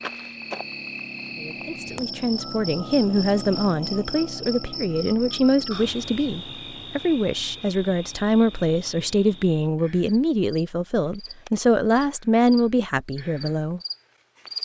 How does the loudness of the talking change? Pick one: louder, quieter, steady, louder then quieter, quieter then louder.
steady.